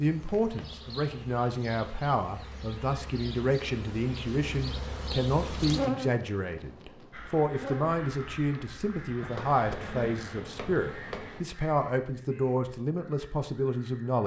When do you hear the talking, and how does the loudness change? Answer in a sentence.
You can hear the talking from 0.0 to 14.2 s, at a steady volume.